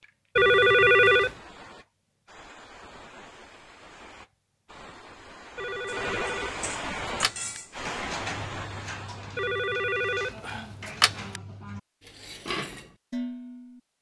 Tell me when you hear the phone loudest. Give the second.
1 s.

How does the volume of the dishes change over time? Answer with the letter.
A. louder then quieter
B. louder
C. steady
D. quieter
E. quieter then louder
E.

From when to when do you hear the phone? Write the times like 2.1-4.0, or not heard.
0.3-1.4, 5.5-7.3, 9.3-11.1.